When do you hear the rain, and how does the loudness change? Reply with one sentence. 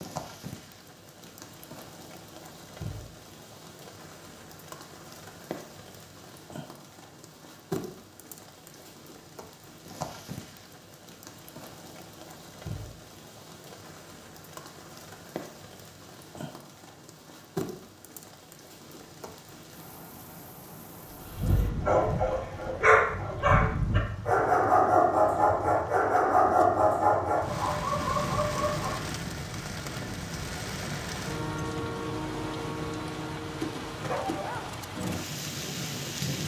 You can hear the rain from 0.0 to 36.4 s, getting louder.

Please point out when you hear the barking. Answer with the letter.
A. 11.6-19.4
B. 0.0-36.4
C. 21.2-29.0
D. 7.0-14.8
C.